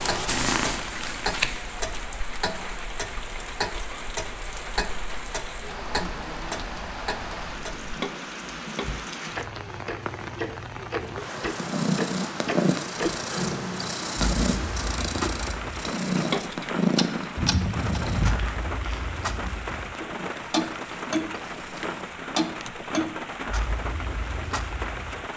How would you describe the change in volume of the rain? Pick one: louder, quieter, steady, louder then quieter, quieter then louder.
steady.